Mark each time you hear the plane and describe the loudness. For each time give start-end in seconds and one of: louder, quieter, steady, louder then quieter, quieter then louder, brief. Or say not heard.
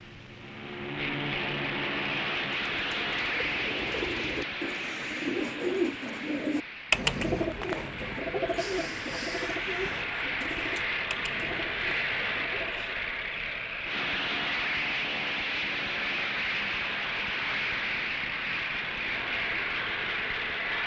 0.0-20.8 quieter then louder.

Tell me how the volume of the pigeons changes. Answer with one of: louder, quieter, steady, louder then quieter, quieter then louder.
louder then quieter.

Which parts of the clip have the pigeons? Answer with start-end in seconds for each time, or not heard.
2.6-12.9.